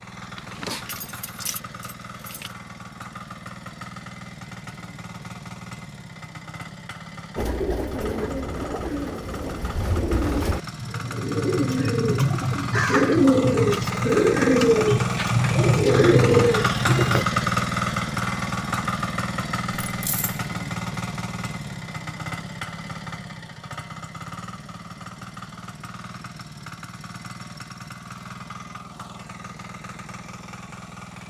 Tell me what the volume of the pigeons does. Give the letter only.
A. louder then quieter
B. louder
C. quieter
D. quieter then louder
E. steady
B.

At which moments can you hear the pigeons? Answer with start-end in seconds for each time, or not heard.
7.3-17.2.